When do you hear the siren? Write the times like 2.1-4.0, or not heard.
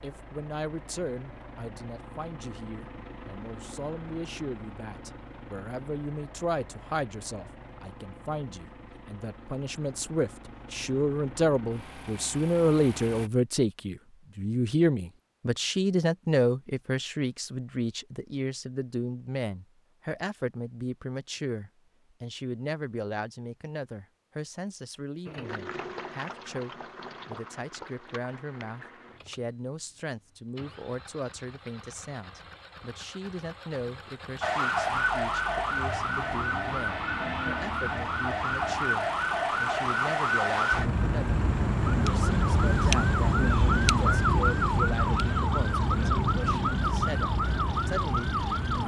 34.4-48.8.